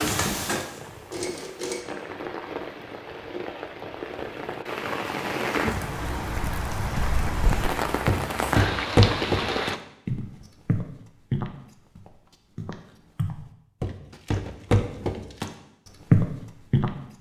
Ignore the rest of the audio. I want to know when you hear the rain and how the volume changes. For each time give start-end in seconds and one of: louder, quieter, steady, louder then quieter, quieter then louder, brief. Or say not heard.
0.0-9.8 louder.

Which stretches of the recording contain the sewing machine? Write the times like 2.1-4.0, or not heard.
0.0-1.9.